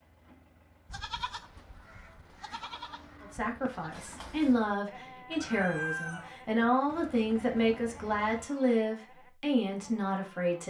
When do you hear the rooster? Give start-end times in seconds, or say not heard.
5.3-6.7.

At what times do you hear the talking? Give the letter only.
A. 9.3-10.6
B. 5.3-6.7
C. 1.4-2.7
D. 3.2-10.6
D.